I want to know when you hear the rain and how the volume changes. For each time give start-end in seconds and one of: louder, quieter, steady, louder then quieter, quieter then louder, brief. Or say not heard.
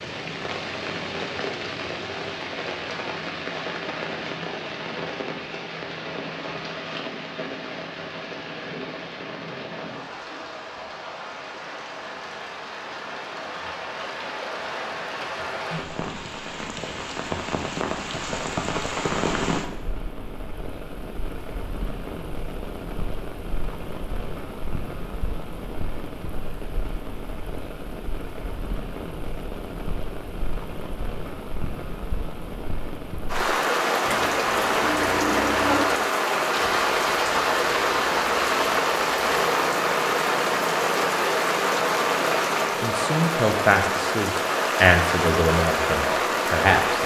0.0-47.0 louder.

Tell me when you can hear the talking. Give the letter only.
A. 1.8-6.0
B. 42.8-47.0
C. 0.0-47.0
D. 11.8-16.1
B.